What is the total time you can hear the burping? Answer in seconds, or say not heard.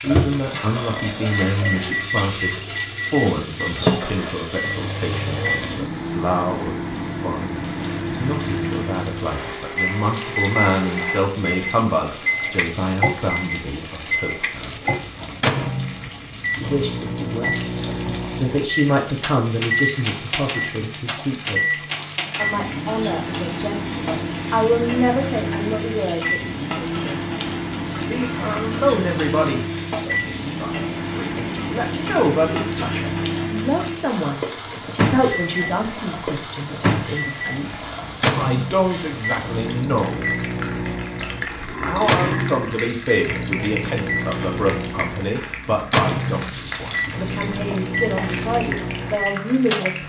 3 s.